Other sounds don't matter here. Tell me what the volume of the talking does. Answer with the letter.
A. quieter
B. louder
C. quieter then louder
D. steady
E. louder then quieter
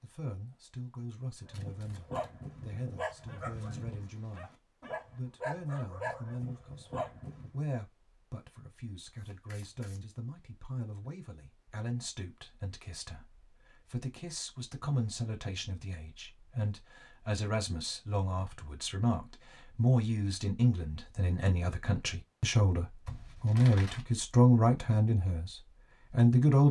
B.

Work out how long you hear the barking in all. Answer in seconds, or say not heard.
6 s.